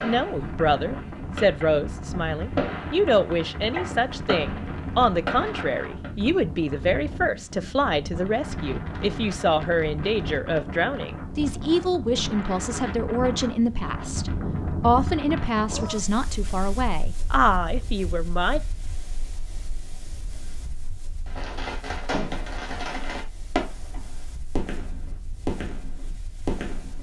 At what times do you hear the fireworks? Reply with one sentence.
You can hear the fireworks from 0.0 to 6.1 s and from 21.2 to 26.9 s.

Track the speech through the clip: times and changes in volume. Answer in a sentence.
You can hear the speech from 0.0 to 18.6 s, at a steady volume.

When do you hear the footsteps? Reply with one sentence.
The footsteps can't be heard in this clip.